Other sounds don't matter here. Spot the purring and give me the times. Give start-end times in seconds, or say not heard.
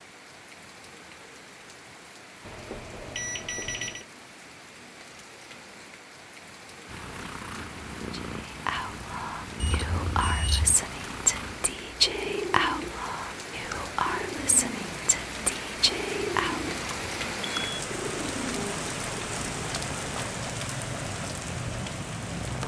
6.8-22.6.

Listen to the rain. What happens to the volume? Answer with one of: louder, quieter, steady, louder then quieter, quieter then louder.
louder.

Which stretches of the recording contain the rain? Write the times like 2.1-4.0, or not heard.
0.0-22.6.